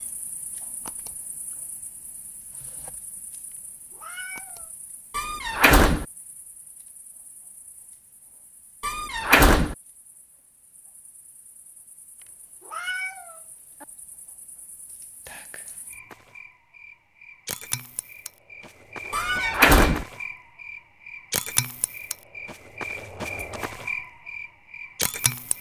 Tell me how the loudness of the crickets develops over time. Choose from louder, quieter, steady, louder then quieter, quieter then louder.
quieter then louder.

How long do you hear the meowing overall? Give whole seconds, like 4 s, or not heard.
4 s.